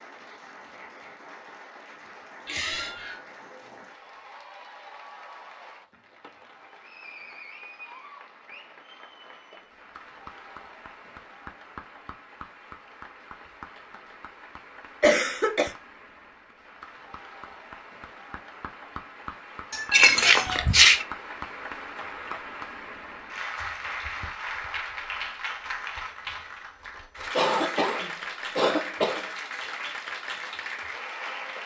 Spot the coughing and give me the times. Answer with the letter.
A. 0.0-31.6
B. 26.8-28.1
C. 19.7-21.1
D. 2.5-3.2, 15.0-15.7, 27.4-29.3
D.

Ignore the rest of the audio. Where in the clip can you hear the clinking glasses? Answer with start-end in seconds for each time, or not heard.
19.7-21.1.